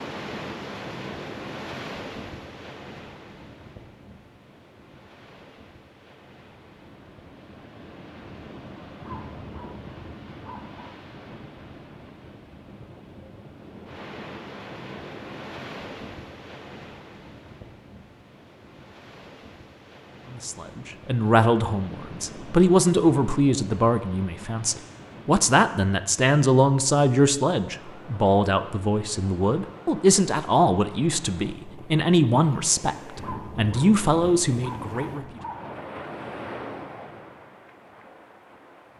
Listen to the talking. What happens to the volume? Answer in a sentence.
The loudness of the talking stays about the same.